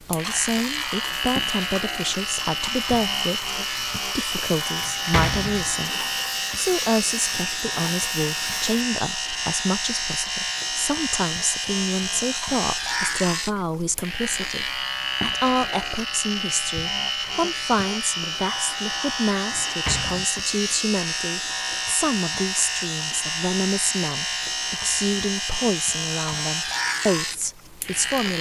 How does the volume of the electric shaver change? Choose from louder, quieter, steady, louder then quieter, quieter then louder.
steady.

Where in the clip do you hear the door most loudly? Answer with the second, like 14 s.
5 s.